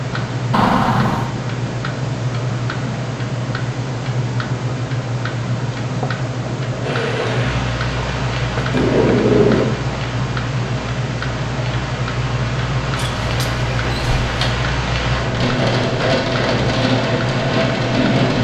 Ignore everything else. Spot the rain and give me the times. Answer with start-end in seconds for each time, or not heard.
6.8-18.3.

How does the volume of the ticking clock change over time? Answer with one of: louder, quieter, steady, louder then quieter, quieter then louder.
steady.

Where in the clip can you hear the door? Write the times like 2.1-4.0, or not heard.
0.5-1.3, 8.6-9.8, 12.9-14.6.